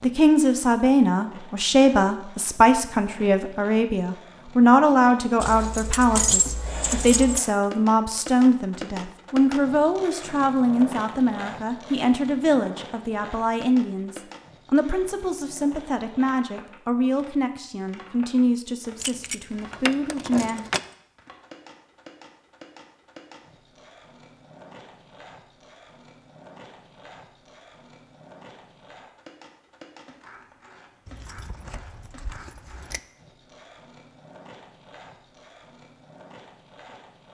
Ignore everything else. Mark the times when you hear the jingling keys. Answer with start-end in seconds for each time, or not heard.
5.4-7.4, 19.0-20.8, 31.1-33.0.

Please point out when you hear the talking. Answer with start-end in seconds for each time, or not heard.
0.0-20.7.